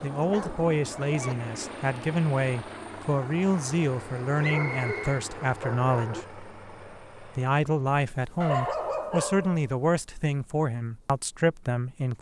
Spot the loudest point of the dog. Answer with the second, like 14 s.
9 s.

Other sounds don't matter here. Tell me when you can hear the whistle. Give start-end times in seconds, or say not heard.
4.4-5.2.